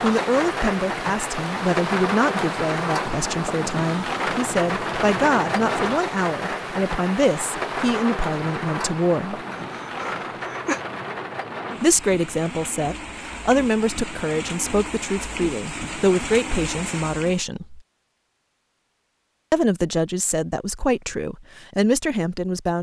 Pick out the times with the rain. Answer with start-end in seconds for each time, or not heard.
0.0-17.4.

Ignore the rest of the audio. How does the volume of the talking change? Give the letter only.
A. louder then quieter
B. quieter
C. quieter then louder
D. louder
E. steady
E.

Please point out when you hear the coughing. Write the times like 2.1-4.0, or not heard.
9.5-10.8.